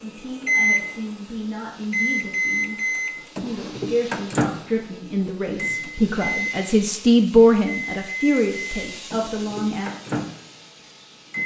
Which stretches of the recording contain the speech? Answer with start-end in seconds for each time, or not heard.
0.0-2.8, 3.4-9.9.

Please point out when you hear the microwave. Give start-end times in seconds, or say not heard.
0.5-0.9, 1.9-6.7, 7.7-11.4.